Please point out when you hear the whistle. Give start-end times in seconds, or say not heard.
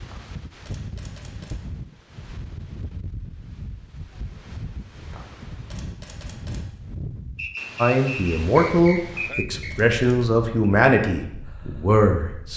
7.3-9.8.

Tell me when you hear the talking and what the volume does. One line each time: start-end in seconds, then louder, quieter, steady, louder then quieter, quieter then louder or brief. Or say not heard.
7.8-12.5 quieter then louder.